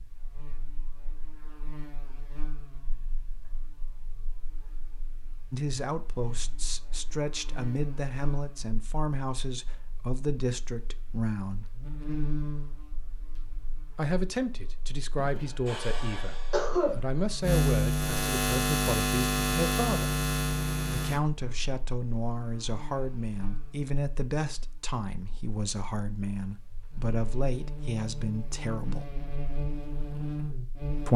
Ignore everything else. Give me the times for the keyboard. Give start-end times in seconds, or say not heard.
not heard.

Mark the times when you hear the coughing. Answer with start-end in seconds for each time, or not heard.
15.2-16.9.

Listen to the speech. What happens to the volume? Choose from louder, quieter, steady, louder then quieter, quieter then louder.
steady.